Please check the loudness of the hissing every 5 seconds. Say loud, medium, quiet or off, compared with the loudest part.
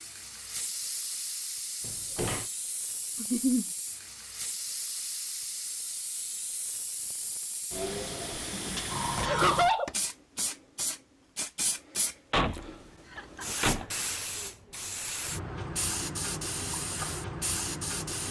medium, loud, loud, loud.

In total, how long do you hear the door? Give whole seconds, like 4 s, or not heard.
3 s.